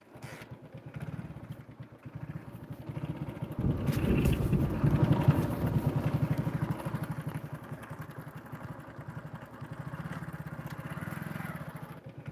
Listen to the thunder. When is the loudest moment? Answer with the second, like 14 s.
4 s.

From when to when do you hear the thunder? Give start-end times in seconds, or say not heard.
3.5-6.0.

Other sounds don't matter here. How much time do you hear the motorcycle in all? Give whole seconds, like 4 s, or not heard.
12 s.